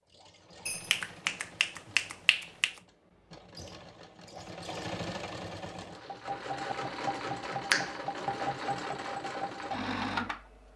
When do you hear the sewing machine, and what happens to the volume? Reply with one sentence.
The sewing machine can be heard from 0.0 to 10.7 s, getting louder.